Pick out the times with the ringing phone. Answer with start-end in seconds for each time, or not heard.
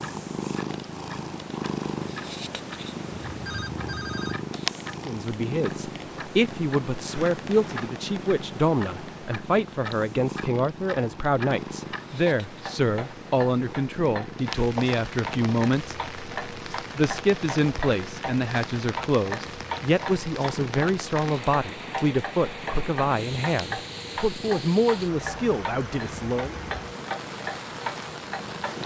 3.2-4.5.